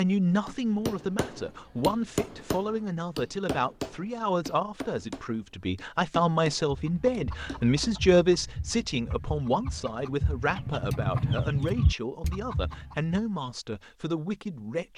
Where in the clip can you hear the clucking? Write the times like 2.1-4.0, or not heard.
6.7-13.3.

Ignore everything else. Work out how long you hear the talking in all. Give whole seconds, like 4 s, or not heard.
15 s.